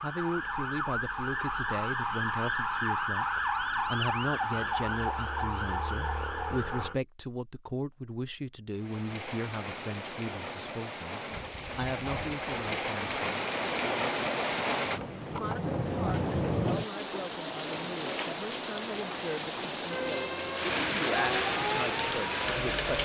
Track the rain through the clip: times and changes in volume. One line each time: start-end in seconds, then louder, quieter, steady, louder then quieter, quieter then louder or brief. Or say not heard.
8.7-22.9 louder.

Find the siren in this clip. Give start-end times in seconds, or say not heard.
0.0-7.0, 19.9-22.9.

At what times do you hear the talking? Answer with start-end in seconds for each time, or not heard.
0.0-13.2, 15.3-22.9.